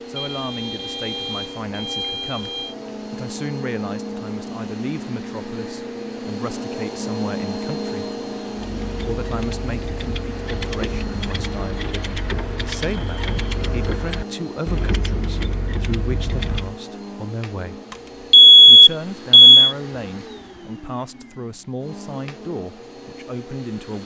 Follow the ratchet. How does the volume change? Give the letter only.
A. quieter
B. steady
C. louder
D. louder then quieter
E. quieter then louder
C.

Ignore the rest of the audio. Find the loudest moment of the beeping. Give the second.
19 s.